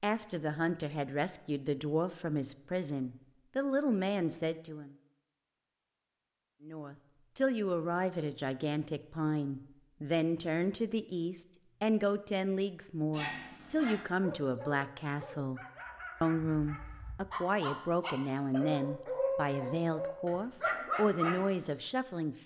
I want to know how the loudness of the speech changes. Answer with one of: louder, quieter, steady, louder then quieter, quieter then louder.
steady.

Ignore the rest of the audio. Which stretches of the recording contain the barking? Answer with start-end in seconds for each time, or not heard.
13.1-21.5.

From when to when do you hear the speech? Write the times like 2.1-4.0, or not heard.
0.0-5.0, 6.6-15.6, 16.2-22.4.